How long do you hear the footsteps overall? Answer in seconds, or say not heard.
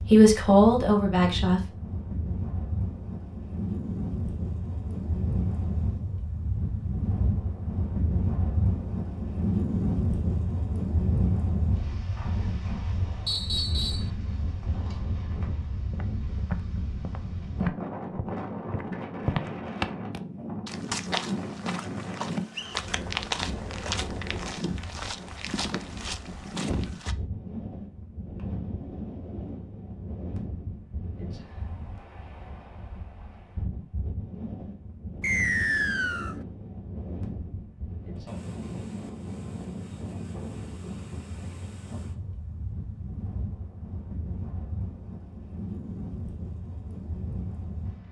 11 s.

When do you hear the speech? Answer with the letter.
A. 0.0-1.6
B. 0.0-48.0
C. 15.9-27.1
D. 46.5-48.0
A.